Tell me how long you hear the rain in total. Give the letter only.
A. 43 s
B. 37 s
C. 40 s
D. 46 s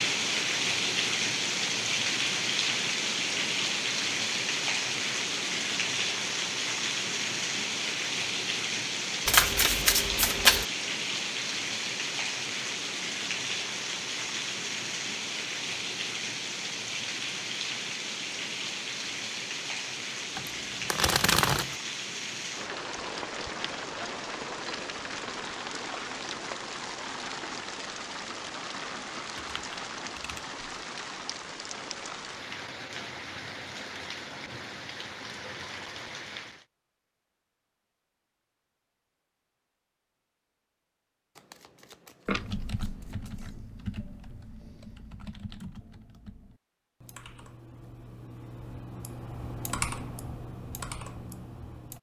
B.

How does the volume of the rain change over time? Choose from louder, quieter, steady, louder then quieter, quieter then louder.
quieter.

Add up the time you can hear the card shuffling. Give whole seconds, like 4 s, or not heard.
5 s.